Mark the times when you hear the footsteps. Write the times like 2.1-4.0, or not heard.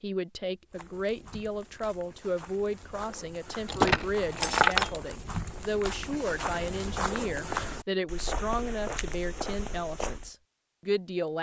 0.7-10.3.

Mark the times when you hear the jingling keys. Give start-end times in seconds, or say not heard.
3.6-5.0.